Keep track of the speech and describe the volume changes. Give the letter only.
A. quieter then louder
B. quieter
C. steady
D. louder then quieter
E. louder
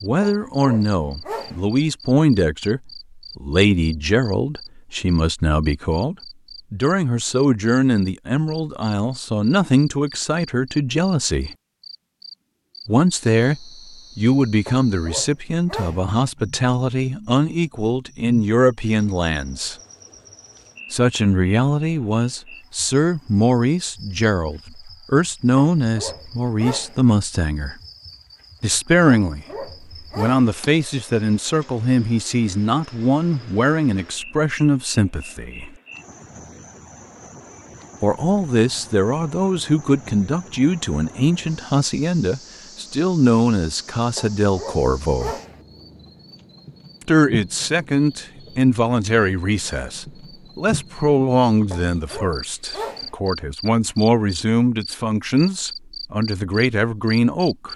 C.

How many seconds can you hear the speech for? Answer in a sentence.
You can hear the speech for 50 seconds altogether.